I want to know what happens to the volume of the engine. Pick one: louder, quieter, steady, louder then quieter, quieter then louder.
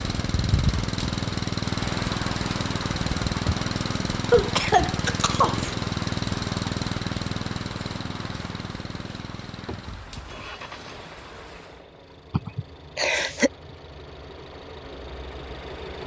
quieter.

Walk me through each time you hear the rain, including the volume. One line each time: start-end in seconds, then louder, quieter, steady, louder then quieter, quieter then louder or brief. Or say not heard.
0.0-11.8 quieter.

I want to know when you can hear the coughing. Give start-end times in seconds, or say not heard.
4.3-5.8, 12.3-13.5.